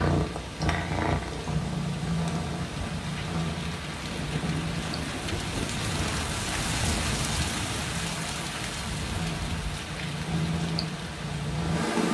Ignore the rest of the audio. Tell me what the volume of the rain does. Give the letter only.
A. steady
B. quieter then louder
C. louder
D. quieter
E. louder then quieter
E.